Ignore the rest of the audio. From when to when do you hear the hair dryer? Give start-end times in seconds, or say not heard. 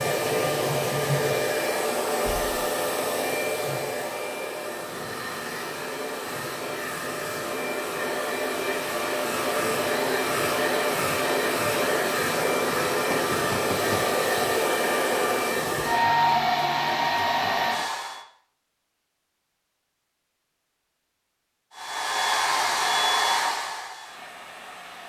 0.0-18.2, 21.8-25.0.